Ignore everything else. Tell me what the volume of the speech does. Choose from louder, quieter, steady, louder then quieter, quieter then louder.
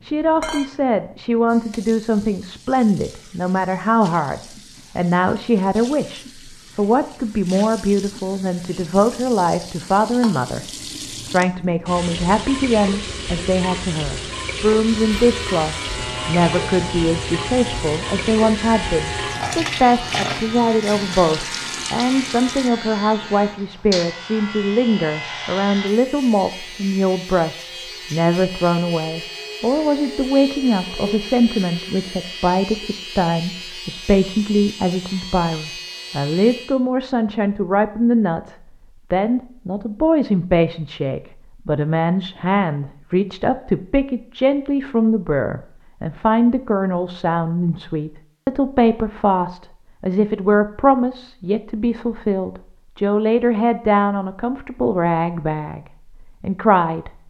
steady.